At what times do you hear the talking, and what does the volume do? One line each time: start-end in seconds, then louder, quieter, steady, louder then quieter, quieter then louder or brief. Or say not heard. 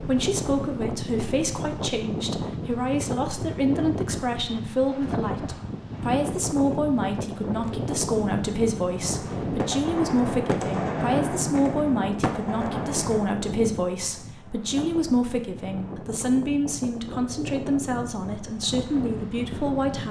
0.0-20.0 steady.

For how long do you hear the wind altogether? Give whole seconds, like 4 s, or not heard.
20 s.